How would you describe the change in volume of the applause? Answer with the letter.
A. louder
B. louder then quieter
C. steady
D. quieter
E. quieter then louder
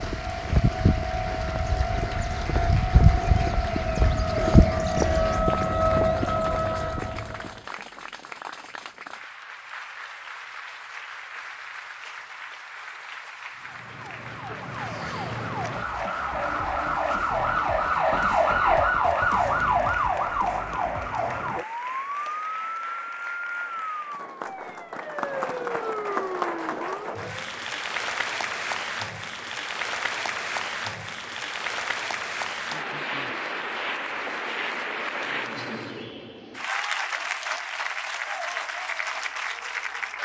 A.